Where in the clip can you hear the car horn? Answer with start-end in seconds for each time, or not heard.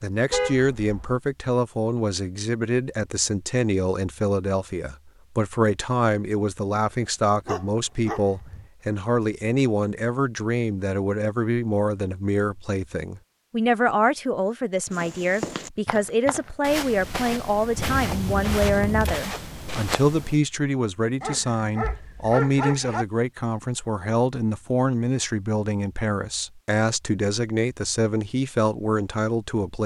0.3-1.2, 17.8-19.2.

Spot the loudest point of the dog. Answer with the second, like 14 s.
23 s.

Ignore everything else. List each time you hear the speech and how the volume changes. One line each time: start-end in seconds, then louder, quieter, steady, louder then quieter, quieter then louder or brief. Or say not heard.
0.0-29.8 steady.